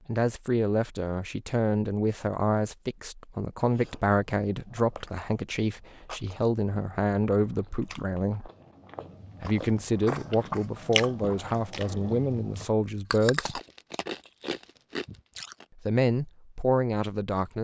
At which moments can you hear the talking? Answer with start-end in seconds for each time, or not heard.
0.1-8.5, 9.4-13.6, 15.8-17.5.